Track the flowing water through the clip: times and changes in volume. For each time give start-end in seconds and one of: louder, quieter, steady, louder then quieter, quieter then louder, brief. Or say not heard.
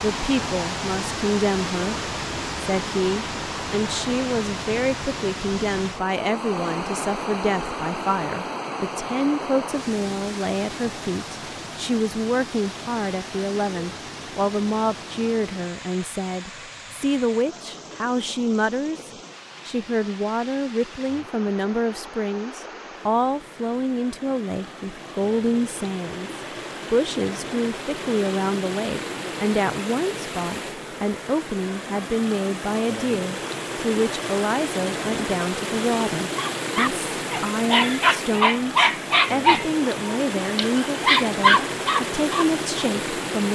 0.0-43.5 quieter then louder.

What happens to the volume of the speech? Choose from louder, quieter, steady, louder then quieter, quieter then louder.
steady.